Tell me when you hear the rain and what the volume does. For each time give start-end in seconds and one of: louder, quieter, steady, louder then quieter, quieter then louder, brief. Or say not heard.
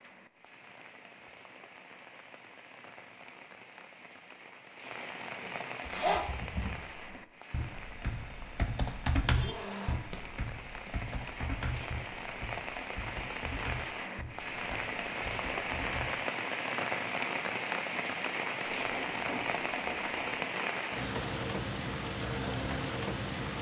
0.0-23.5 louder.